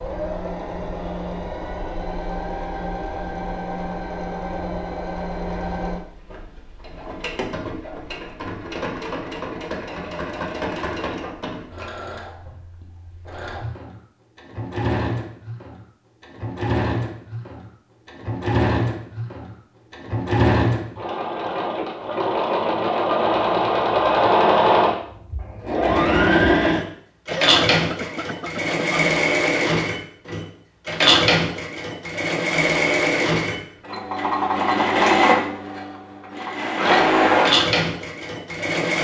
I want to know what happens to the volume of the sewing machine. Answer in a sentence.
The volume of the sewing machine goes up.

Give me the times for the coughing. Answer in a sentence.
The coughing can be heard from 27.3 to 29.1 s.